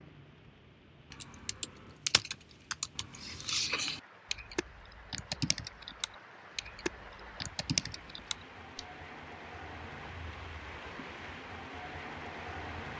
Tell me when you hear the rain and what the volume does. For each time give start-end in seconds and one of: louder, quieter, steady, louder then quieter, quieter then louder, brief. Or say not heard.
0.0-12.9 louder.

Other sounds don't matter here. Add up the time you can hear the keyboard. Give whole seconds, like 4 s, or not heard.
8 s.